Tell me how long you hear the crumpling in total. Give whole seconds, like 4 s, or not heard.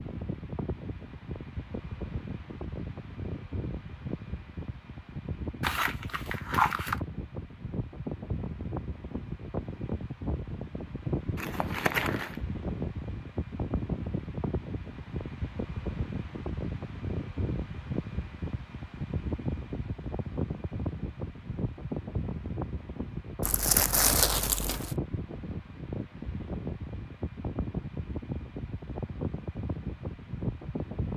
4 s.